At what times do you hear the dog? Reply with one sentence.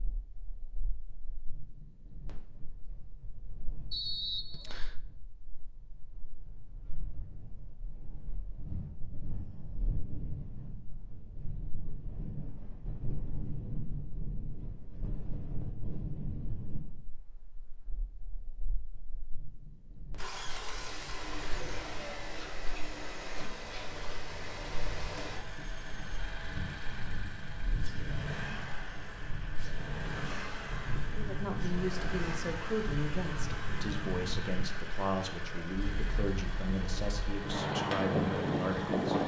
The dog can't be heard in this clip.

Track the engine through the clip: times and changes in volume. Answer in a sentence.
The engine can be heard from 20.1 to 39.2 s, at a steady volume.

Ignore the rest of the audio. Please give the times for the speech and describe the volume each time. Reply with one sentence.
The speech can be heard from 31.1 to 39.2 s, at a steady volume.